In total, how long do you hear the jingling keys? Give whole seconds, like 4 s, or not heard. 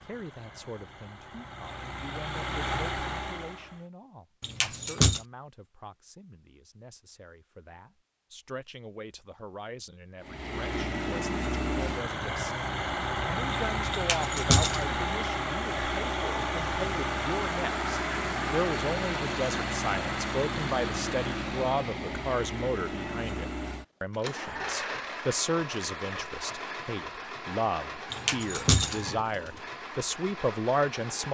3 s.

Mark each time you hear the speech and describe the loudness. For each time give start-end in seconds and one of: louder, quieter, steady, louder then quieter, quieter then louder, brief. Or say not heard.
0.0-31.2 louder.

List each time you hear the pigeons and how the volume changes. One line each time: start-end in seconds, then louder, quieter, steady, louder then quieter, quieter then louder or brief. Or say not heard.
not heard.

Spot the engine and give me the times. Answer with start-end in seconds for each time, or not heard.
0.0-3.9, 10.2-31.2.